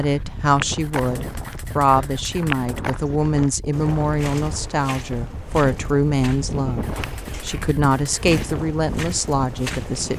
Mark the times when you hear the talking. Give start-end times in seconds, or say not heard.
0.0-10.1.